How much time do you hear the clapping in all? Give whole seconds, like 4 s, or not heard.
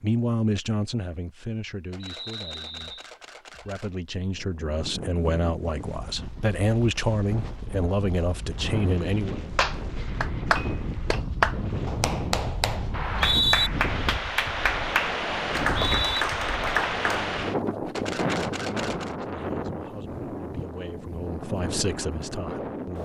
8 s.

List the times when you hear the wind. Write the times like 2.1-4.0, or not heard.
4.3-23.0.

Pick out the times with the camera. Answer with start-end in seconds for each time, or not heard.
1.9-3.9, 17.9-19.1.